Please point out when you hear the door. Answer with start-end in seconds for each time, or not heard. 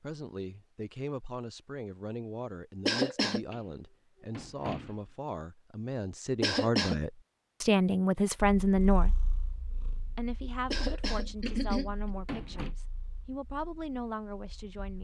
3.5-5.0, 11.4-12.8.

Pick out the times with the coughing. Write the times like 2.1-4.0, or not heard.
2.9-3.5, 6.4-7.0, 10.7-12.1.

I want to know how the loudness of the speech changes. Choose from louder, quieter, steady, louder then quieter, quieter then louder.
louder then quieter.